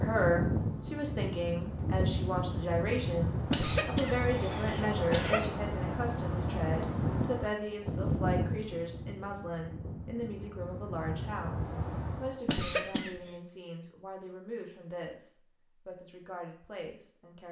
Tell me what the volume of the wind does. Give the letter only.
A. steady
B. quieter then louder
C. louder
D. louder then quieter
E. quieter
E.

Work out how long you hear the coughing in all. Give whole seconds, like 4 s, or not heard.
3 s.